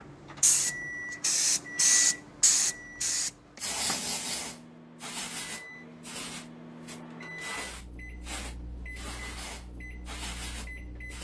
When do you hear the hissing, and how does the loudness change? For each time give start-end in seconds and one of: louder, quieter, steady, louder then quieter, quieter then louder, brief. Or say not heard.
0.3-11.1 quieter.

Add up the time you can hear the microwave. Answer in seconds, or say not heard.
11 s.